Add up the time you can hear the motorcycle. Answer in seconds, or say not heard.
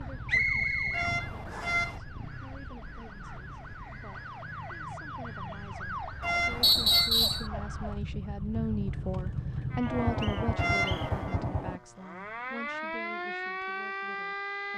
12 s.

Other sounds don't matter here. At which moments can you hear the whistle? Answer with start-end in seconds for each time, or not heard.
0.2-1.8, 6.6-7.5, 9.8-11.1.